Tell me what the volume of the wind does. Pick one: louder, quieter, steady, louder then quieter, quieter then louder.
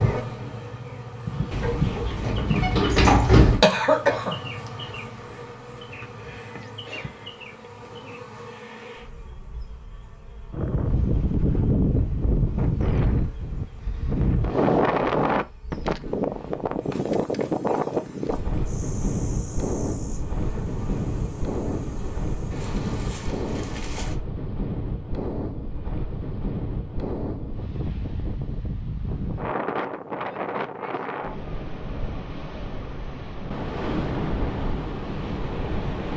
quieter.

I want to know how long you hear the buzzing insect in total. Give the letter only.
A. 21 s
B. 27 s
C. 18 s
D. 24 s
D.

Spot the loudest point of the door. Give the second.
3 s.